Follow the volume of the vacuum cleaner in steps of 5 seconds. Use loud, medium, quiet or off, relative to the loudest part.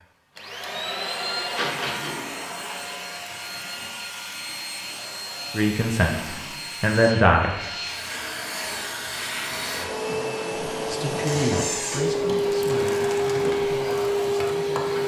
medium, medium, loud.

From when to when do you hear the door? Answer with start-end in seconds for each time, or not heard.
1.6-2.2, 11.2-12.1.